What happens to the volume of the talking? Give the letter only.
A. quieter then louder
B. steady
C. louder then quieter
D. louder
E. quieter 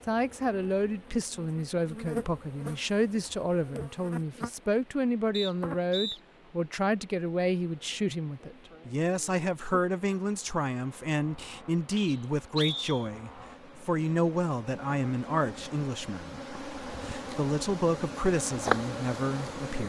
B.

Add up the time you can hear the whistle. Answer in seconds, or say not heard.
2 s.